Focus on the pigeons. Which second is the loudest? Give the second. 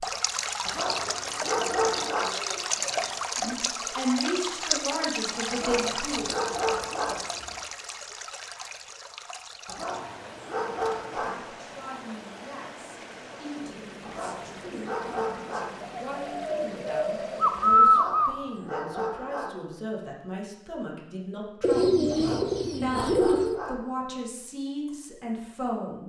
18 s.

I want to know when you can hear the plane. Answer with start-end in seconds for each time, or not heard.
not heard.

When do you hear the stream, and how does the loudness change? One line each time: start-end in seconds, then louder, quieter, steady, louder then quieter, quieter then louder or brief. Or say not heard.
0.0-17.9 quieter.